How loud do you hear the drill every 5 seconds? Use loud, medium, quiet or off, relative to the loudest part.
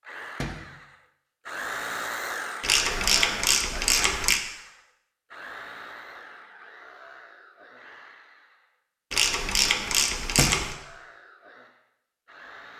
loud, medium, quiet.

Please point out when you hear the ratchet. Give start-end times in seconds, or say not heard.
2.6-4.4, 9.1-10.8.